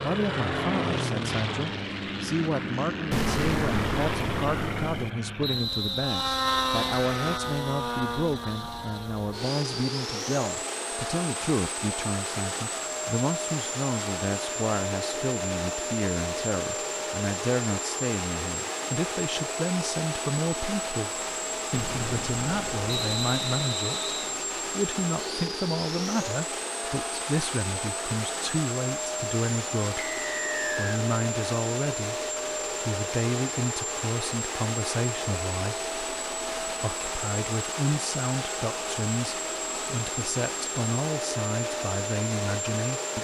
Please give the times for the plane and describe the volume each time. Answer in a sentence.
You can hear the plane from 0.0 to 43.1 s, at a steady volume.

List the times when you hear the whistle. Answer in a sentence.
The whistle can be heard from 5.4 to 7.4 s, from 22.9 to 24.4 s and from 29.9 to 31.0 s.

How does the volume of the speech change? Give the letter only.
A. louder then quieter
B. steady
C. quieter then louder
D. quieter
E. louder
B.